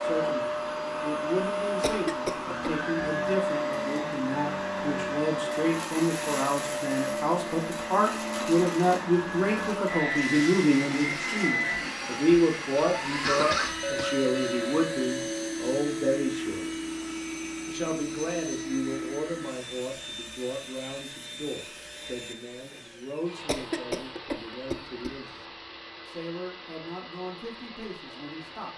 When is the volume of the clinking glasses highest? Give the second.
14 s.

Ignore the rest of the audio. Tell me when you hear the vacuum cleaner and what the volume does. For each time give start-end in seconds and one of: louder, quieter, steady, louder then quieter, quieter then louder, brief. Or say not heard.
0.0-28.7 quieter.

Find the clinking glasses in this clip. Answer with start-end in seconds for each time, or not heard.
13.8-15.6.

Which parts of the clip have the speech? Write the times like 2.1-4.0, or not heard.
0.0-16.8, 17.6-28.7.